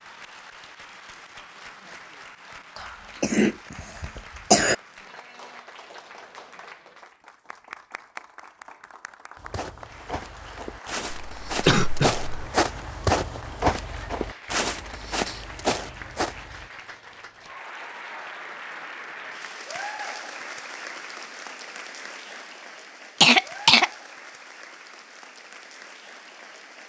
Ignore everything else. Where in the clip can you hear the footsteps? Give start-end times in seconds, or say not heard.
9.3-16.7.